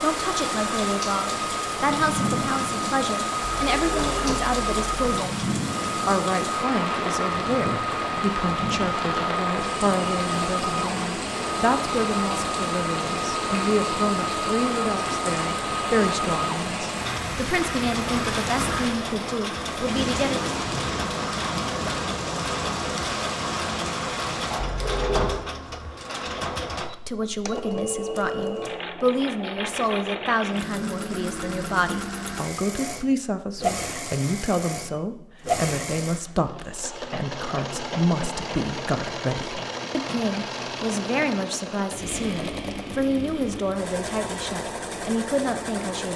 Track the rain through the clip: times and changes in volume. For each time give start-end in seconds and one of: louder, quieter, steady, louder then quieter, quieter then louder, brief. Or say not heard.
0.0-24.6 steady.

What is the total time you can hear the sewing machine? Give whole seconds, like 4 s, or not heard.
46 s.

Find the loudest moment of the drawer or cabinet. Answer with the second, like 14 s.
25 s.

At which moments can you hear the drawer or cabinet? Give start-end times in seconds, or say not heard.
3.4-5.0, 24.6-25.4.